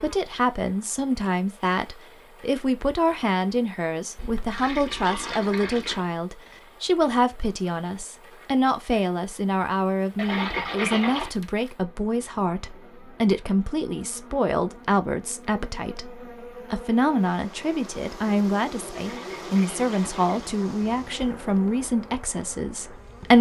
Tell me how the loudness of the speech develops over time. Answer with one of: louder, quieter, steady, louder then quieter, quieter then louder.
steady.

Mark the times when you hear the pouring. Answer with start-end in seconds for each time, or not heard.
4.2-6.0, 10.2-11.3, 18.9-20.6.